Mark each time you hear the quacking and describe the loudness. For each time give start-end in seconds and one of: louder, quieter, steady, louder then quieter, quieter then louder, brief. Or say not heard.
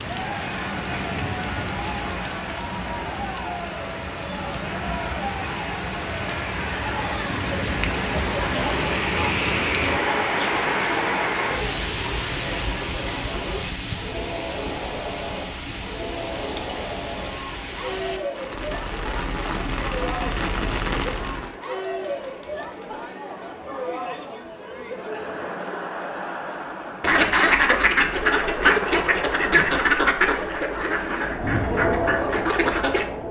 27.0-33.0 quieter.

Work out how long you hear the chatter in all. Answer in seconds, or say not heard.
33 s.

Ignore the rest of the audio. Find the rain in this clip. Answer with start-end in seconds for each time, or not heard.
0.0-21.6.